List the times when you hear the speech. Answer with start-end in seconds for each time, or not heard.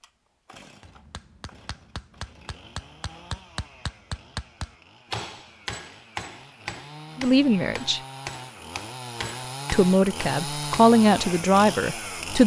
7.2-8.0, 9.7-12.4.